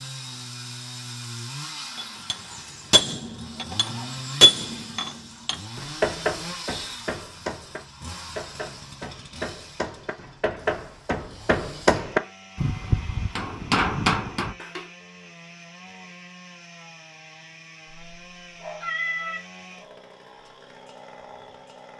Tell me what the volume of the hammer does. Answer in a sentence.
The loudness of the hammer goes down, then up.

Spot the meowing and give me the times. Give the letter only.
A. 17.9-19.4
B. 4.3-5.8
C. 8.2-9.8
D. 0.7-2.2
A.